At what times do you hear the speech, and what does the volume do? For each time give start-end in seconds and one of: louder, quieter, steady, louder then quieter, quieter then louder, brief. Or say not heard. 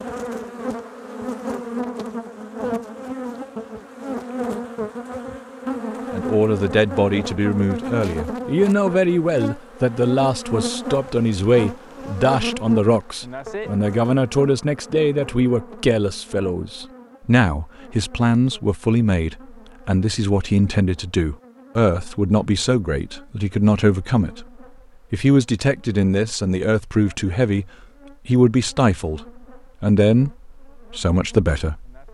6.1-24.4 steady
25.1-32.0 steady.